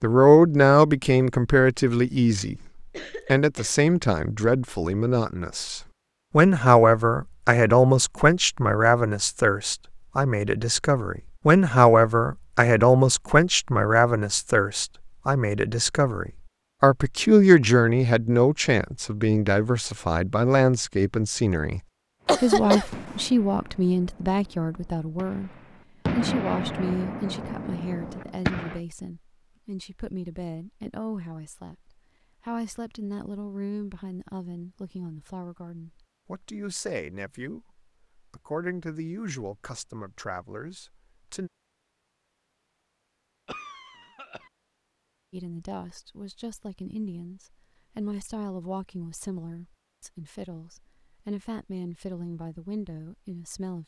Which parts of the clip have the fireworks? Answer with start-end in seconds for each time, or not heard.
22.2-28.8.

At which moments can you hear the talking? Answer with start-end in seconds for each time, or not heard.
0.0-25.5, 26.1-41.5, 45.3-53.8.